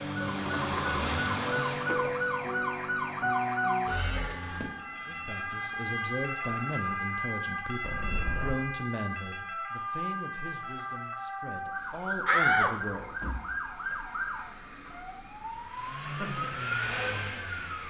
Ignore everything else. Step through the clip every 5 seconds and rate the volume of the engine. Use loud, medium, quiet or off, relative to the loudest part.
loud, off, off, loud.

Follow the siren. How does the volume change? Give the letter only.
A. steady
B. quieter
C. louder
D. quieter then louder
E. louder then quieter
B.